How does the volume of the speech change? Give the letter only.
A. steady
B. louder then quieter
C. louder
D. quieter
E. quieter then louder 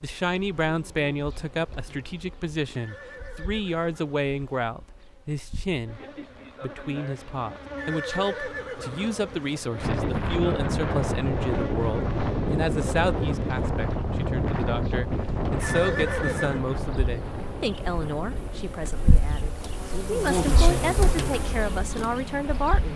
A.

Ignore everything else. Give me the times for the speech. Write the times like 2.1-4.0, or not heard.
0.0-6.0, 6.6-22.9.